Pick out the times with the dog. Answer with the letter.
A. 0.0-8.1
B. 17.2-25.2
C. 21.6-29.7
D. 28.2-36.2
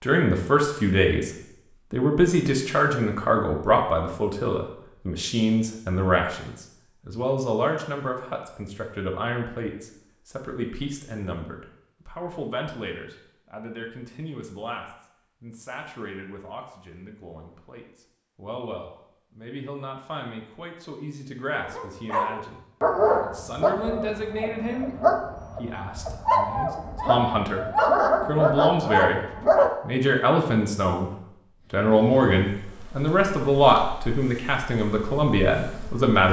C.